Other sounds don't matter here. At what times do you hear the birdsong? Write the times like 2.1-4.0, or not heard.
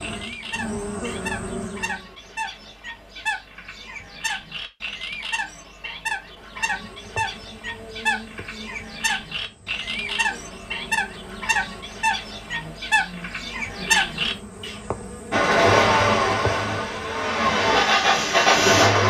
0.0-14.8.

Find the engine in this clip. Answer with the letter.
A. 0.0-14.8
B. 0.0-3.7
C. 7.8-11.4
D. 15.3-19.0
D.